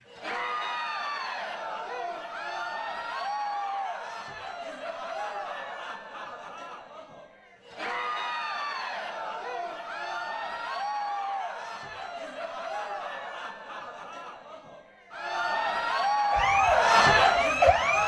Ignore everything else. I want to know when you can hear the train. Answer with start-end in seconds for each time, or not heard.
not heard.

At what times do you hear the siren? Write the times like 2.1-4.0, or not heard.
16.3-18.0.